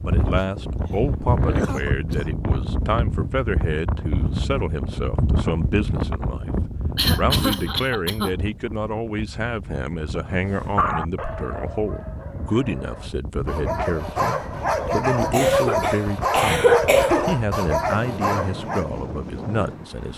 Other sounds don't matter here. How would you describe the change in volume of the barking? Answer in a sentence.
The loudness of the barking goes up.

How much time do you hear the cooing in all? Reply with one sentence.
The cooing can't be heard in this clip.